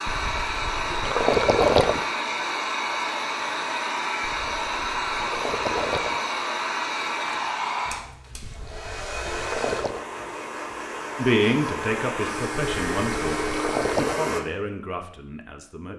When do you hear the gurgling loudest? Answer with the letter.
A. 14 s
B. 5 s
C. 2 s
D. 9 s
C.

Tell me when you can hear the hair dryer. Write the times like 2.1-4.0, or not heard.
0.0-14.4.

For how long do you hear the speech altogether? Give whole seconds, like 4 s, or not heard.
5 s.